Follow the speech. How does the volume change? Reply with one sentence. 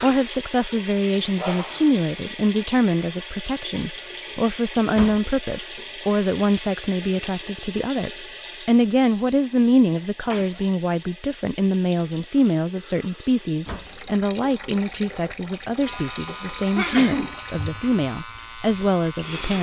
The volume of the speech stays about the same.